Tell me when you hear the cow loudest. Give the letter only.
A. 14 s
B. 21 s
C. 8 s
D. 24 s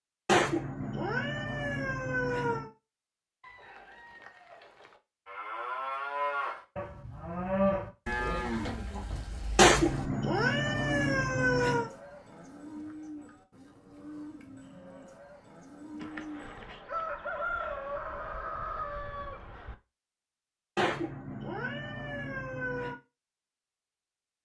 C.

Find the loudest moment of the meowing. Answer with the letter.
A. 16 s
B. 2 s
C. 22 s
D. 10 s
D.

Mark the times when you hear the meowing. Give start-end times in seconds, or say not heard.
0.2-2.7, 9.6-11.9, 20.8-22.9.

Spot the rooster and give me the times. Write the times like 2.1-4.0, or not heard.
3.4-5.0, 16.0-19.8.